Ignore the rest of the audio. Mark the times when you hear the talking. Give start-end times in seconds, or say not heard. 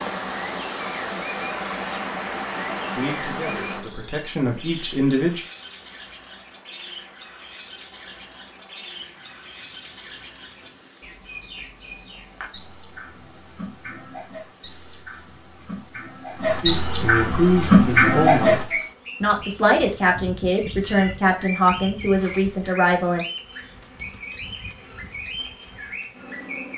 3.0-5.4, 16.6-23.2.